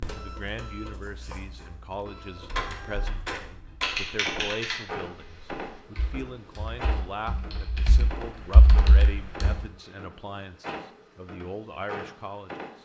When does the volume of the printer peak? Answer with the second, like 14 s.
3 s.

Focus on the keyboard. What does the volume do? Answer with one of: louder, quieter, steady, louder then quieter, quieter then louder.
quieter then louder.